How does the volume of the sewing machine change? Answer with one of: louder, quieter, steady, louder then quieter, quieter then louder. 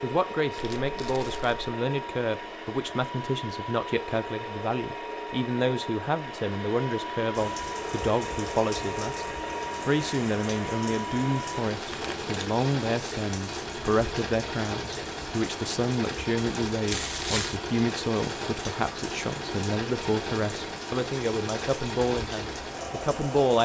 steady.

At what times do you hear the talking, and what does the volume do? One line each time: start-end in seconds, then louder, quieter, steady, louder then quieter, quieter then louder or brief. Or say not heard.
0.0-23.5 steady.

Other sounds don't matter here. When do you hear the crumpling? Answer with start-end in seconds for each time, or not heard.
0.6-1.7, 11.9-12.3, 16.9-17.6.